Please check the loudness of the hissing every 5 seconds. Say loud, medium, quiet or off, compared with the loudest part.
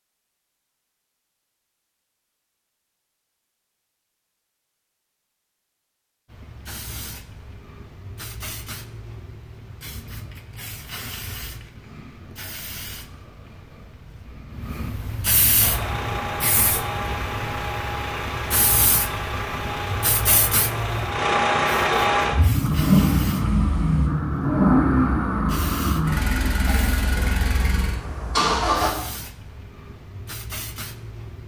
off, medium, medium, loud, loud, medium, medium.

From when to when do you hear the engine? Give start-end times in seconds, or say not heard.
15.6-28.9.